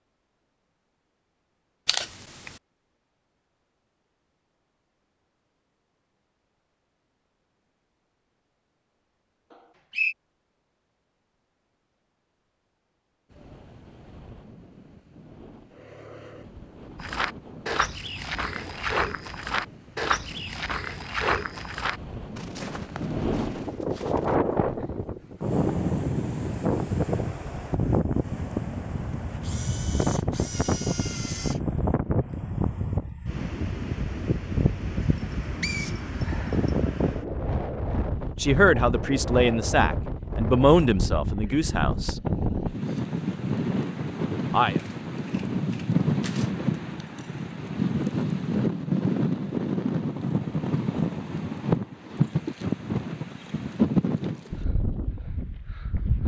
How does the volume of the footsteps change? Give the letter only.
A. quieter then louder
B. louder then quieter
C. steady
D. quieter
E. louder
D.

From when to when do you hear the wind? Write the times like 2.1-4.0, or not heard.
13.3-56.2.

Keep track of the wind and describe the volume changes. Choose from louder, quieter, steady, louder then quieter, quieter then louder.
louder.